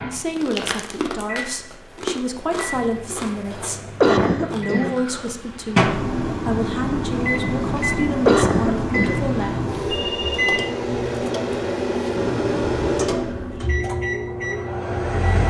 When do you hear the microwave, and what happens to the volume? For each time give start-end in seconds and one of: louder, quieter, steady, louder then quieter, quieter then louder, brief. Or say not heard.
0.0-15.4 louder.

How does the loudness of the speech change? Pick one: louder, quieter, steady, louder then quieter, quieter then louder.
steady.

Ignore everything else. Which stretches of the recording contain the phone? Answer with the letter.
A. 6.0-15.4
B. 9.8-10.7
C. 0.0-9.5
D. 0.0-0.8
B.